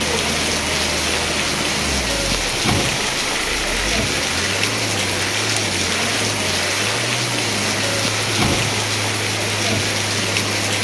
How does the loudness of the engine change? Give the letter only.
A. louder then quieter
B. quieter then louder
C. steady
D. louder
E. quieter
C.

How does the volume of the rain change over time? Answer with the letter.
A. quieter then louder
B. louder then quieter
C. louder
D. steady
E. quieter
D.